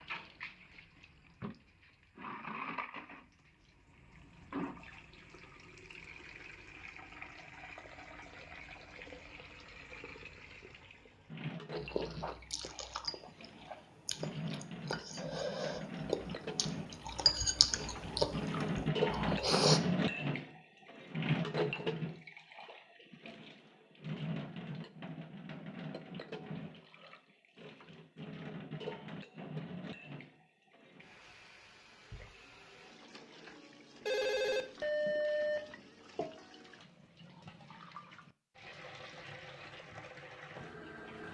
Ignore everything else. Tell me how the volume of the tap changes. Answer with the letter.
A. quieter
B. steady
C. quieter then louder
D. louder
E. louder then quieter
E.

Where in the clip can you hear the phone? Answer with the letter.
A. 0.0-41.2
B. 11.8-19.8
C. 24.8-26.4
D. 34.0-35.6
D.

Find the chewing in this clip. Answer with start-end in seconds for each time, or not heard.
11.8-19.8.